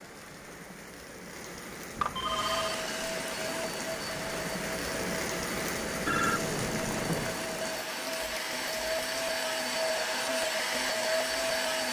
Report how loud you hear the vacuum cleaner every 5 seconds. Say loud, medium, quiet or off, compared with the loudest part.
medium, medium, loud.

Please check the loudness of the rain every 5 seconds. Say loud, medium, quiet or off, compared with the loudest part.
loud, loud, medium.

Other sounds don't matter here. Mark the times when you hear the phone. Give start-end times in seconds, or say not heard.
1.9-2.8, 6.0-7.4.